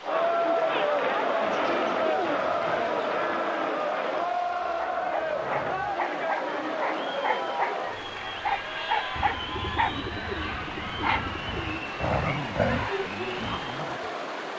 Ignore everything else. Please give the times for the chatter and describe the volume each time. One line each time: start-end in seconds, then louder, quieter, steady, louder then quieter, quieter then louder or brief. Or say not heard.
0.0-14.5 quieter.